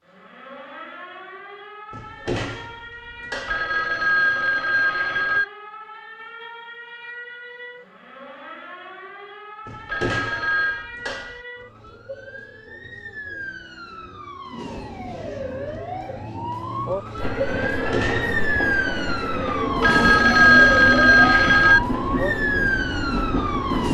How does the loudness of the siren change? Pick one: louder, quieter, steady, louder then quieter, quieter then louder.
louder.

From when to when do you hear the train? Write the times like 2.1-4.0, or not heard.
17.1-23.8.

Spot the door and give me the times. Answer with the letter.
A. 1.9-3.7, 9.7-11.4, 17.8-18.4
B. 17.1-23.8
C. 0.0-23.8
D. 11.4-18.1
A.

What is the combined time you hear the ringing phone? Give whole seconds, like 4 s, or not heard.
5 s.